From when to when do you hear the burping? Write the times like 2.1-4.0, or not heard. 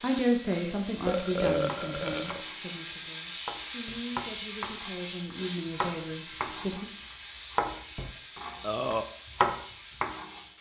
1.1-2.4, 8.6-9.1.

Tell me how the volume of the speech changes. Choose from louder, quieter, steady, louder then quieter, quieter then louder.
quieter then louder.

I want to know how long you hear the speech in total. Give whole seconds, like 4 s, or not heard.
7 s.